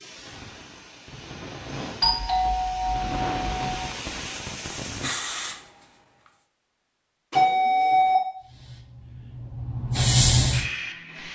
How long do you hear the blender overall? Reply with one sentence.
The blender can't be heard in this clip.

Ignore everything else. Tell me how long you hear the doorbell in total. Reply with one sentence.
The doorbell can be heard for 3 seconds in total.